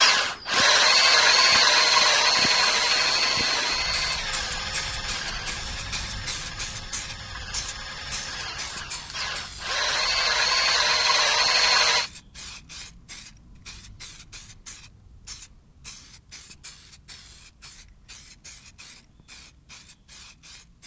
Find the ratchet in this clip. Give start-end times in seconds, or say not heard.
not heard.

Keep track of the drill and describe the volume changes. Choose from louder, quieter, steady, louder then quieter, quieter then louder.
quieter then louder.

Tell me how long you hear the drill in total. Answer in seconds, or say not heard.
12 s.